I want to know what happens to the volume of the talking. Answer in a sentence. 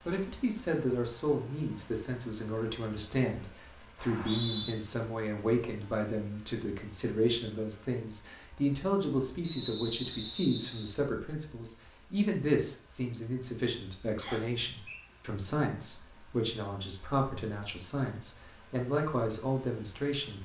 The volume of the talking stays about the same.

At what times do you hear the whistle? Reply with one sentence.
You can hear the whistle from 4.0 to 4.8 s, from 9.4 to 10.9 s and from 14.2 to 15.0 s.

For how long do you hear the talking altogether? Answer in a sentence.
The talking can be heard for 20 seconds in total.